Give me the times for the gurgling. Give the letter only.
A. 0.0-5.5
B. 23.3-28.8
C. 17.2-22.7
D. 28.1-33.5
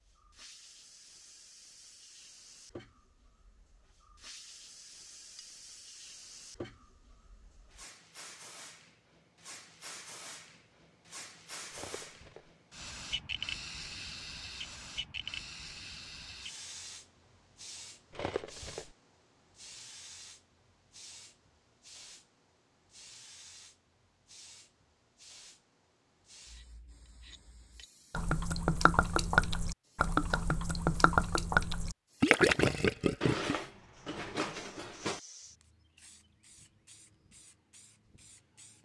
D.